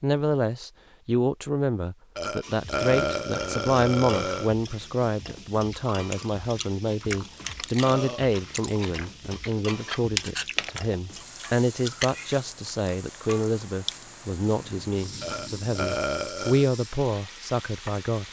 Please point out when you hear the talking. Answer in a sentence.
You can hear the talking from 0.0 to 18.2 s.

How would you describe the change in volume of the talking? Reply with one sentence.
The volume of the talking stays about the same.